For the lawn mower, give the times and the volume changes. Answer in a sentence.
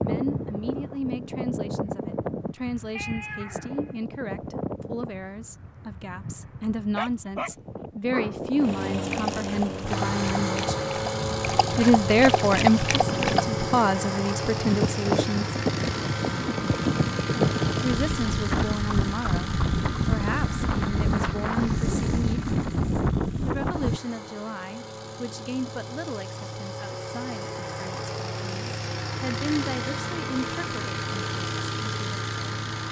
The lawn mower can be heard from 8.6 to 32.8 s, getting quieter then louder.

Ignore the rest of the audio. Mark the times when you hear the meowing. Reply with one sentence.
You can hear the meowing from 3.0 to 4.0 s.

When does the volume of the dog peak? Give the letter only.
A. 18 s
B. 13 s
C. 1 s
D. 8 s
B.